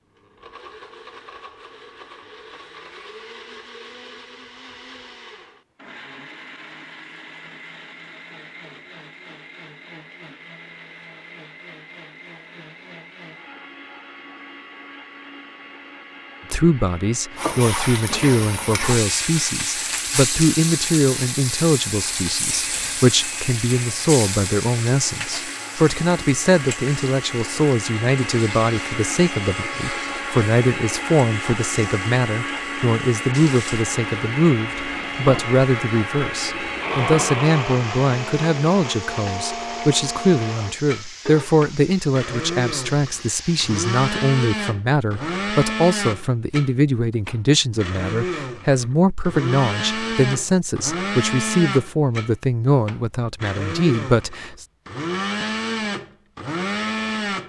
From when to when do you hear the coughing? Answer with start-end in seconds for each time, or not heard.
not heard.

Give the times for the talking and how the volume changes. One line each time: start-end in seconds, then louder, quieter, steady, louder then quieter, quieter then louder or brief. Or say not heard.
16.5-54.6 steady.